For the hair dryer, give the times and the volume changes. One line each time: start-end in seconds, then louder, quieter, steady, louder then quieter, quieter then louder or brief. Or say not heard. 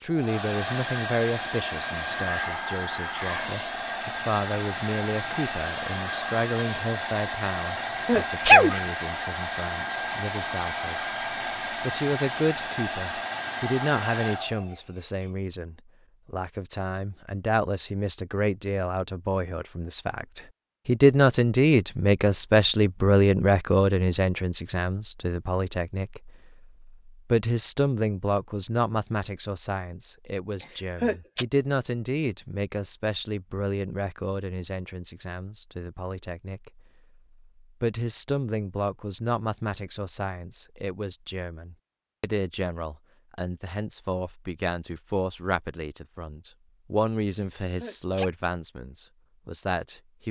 0.0-15.3 steady.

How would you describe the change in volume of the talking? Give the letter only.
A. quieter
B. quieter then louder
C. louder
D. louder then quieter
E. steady
D.